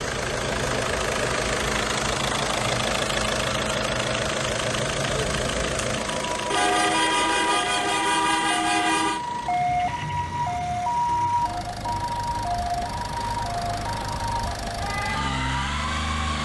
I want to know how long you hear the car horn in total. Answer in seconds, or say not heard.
3 s.